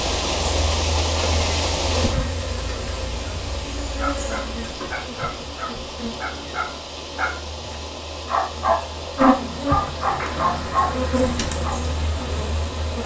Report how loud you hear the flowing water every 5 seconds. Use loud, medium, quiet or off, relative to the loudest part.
loud, medium, medium.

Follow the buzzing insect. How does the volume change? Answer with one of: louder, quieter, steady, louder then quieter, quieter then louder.
quieter then louder.